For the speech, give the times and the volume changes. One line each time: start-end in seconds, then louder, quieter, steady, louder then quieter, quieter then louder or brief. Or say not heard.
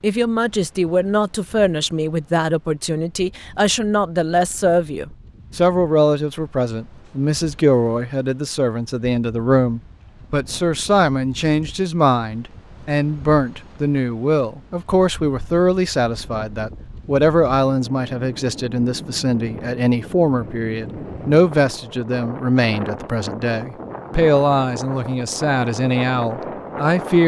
0.0-27.2 steady.